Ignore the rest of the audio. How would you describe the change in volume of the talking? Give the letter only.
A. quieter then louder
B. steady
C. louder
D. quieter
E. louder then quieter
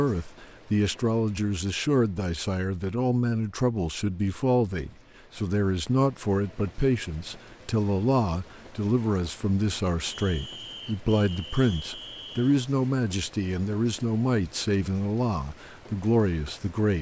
B.